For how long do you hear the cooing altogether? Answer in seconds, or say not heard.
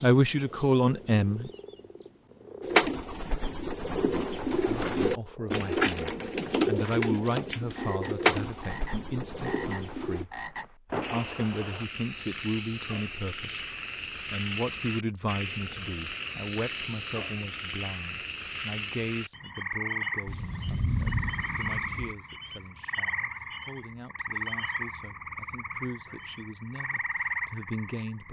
8 s.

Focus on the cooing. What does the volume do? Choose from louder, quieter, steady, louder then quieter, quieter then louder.
louder then quieter.